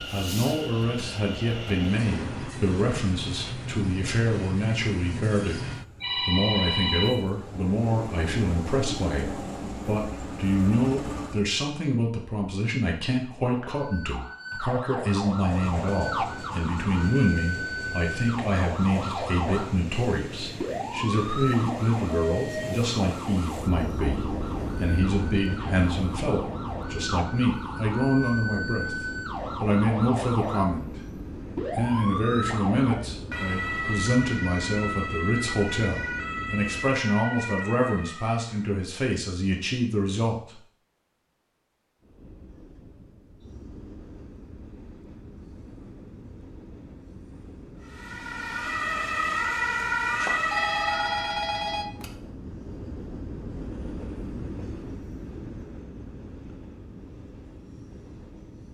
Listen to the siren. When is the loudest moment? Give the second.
50 s.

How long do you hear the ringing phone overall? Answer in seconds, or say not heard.
3 s.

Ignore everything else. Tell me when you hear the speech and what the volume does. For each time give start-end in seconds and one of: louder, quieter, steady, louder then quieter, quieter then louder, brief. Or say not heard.
0.0-40.6 steady.